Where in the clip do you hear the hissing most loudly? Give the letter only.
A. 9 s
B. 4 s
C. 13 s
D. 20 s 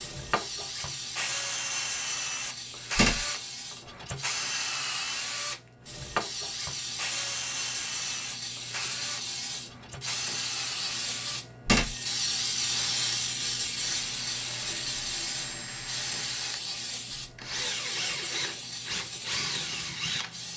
C.